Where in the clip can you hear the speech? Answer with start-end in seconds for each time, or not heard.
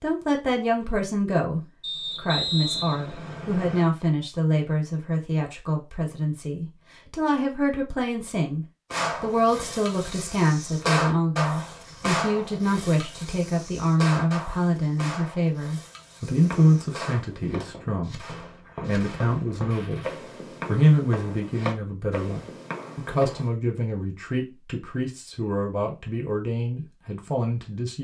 0.0-27.9.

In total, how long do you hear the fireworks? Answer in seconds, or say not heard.
11 s.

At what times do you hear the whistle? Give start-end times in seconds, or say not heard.
1.8-3.9.